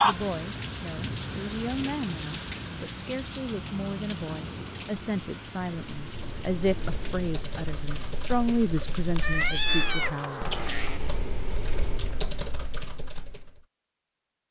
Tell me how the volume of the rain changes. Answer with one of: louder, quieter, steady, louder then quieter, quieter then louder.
quieter.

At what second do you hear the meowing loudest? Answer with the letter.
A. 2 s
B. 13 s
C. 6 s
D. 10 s
D.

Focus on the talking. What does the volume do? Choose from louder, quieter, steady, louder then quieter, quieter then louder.
louder.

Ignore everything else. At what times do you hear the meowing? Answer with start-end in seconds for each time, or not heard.
9.2-11.0.